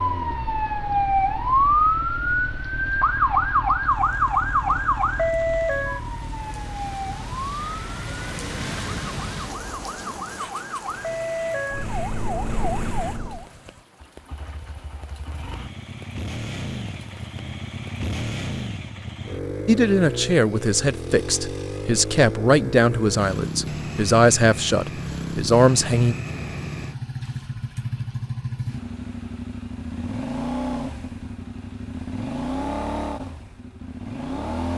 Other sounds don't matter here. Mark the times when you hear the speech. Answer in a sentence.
You can hear the speech from 19.6 to 26.1 s.